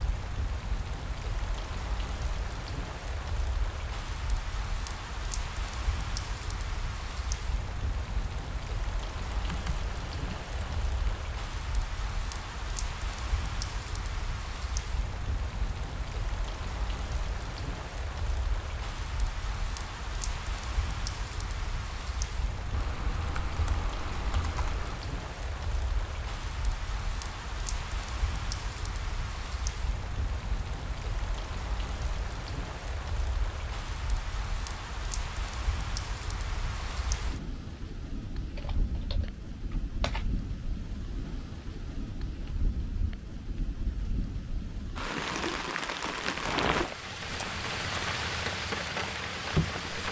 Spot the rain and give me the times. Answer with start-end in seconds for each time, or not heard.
0.0-50.0.